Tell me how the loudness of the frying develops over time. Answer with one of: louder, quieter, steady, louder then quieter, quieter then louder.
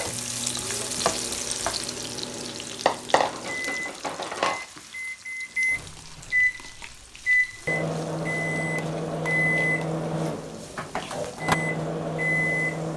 quieter.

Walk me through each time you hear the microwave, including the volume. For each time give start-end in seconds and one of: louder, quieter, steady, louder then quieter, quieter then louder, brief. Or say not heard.
0.0-12.9 louder.